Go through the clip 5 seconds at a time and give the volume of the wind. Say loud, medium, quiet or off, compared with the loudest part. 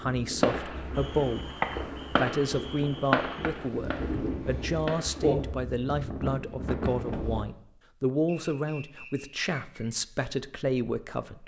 medium, loud, off.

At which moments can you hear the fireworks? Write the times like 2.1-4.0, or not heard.
0.4-5.5.